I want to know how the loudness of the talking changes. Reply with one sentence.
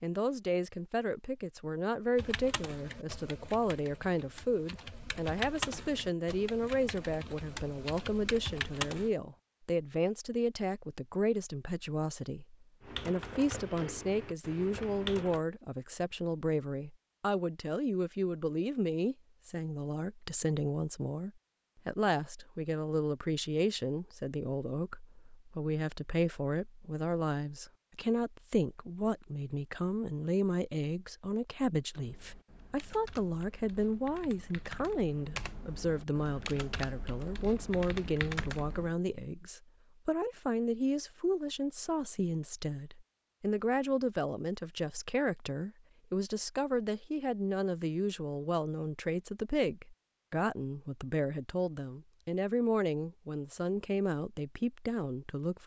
The loudness of the talking stays about the same.